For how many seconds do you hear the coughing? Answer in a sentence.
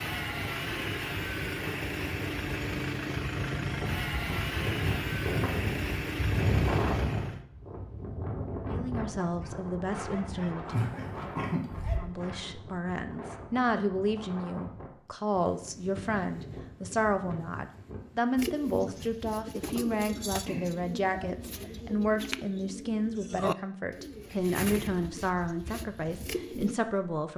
You can hear the coughing for 3 seconds altogether.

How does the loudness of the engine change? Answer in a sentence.
The loudness of the engine stays about the same.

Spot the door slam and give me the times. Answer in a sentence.
You can't hear the door slam here.